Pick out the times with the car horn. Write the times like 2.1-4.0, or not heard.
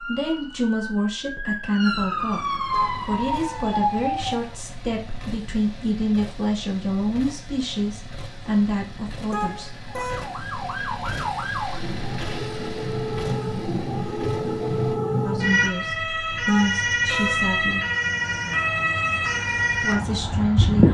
2.7-3.8, 9.3-10.3, 16.4-17.5.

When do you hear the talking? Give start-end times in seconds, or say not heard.
0.0-9.8, 15.2-17.8, 19.8-20.8.